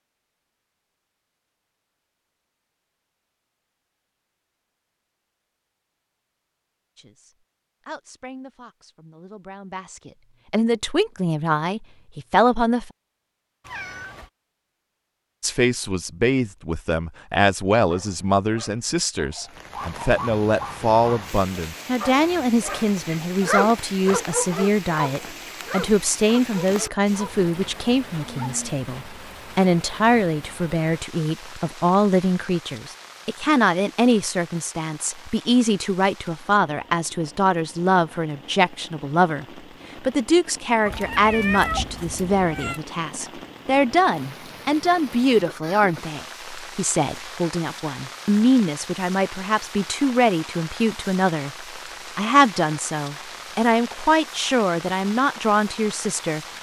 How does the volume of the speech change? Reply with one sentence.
The volume of the speech stays about the same.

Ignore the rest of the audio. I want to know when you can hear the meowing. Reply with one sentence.
The meowing can be heard from 13.6 to 14.3 s and from 40.9 to 42.8 s.